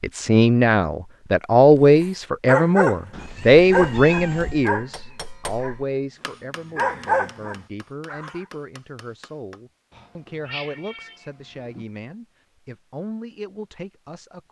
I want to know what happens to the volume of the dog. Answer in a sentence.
The volume of the dog goes down, then up.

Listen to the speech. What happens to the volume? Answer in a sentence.
The volume of the speech goes down.